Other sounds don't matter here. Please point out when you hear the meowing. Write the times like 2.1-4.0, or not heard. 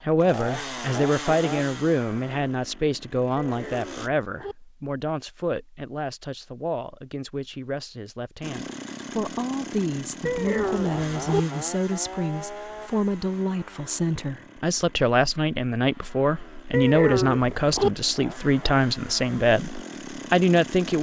3.4-4.5, 10.2-11.4, 16.7-17.9.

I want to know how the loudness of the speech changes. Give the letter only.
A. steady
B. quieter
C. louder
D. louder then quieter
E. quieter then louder
E.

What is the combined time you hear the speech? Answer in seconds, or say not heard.
21 s.